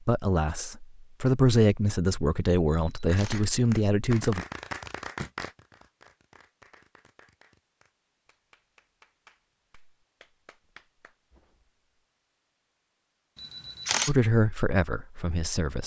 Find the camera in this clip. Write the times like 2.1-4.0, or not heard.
2.7-3.5, 13.3-14.2.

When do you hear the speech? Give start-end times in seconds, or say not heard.
0.1-4.5, 14.1-15.8.